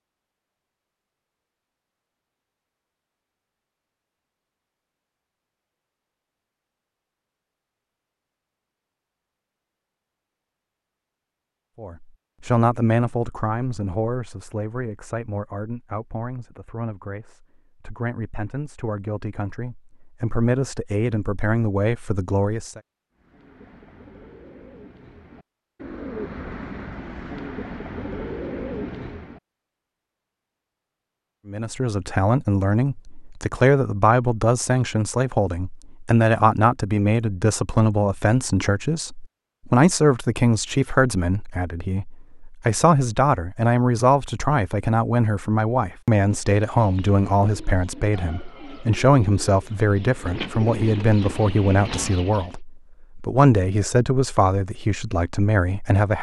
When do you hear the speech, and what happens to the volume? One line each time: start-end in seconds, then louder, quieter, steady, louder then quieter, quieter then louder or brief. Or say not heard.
11.8-22.8 quieter then louder
31.4-56.1 steady.